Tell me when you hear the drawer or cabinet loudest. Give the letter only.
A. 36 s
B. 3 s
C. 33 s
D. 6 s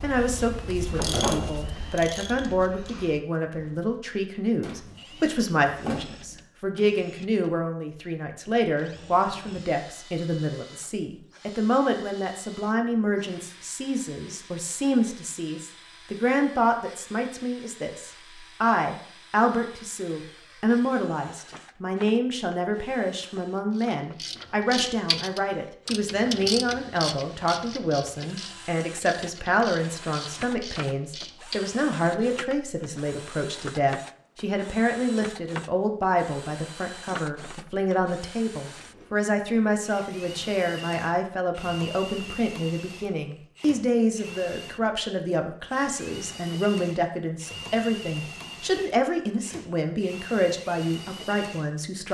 D.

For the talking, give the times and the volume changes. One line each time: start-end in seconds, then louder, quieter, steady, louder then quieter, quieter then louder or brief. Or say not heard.
0.0-52.0 steady.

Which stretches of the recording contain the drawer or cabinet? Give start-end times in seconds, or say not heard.
4.6-6.4.